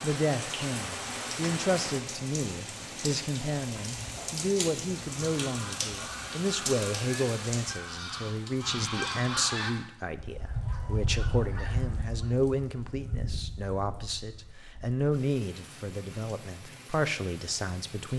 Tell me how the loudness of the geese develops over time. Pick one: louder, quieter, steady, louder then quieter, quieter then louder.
louder then quieter.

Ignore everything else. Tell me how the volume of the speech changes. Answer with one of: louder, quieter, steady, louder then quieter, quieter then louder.
steady.